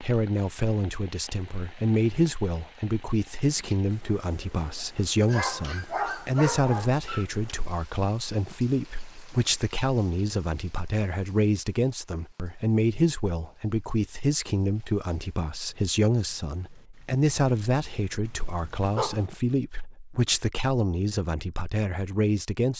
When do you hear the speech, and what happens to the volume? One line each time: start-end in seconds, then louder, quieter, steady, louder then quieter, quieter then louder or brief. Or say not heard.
0.0-22.7 steady.